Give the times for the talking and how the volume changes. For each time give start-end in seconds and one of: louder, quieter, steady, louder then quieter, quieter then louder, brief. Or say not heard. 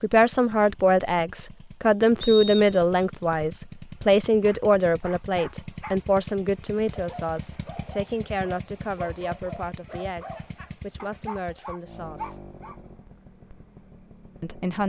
0.0-12.4 quieter
14.4-14.8 brief.